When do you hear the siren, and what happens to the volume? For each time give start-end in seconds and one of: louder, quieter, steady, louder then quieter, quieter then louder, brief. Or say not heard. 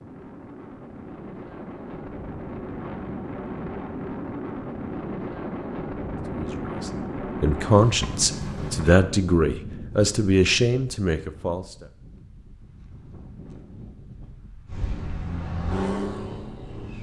not heard.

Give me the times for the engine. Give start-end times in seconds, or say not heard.
14.7-16.9.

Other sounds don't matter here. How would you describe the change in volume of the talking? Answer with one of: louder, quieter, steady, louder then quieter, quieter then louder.
louder.